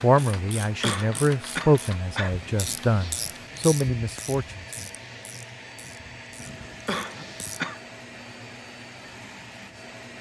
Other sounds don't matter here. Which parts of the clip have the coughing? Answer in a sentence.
You can hear the coughing from 0.8 to 2.4 s and from 6.8 to 7.8 s.